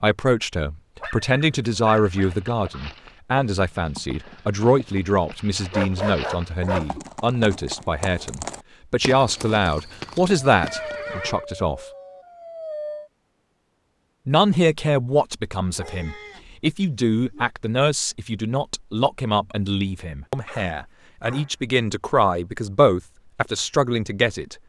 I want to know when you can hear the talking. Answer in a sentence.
You can hear the talking from 0.0 to 11.8 s and from 14.2 to 24.6 s.